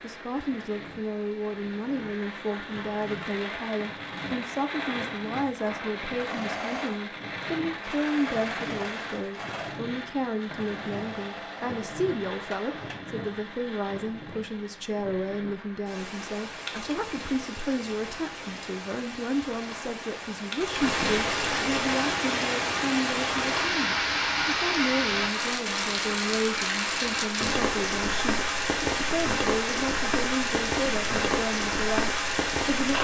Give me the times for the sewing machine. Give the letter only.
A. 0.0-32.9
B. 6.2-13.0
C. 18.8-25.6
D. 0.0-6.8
B.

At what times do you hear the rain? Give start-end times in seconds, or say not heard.
0.0-32.9.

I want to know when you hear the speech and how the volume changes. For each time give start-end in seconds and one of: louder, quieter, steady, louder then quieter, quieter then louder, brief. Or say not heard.
0.0-32.9 steady.